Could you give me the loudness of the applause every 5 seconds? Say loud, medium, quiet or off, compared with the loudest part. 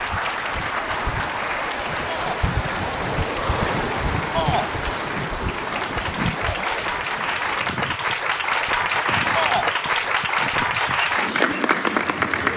medium, loud, loud.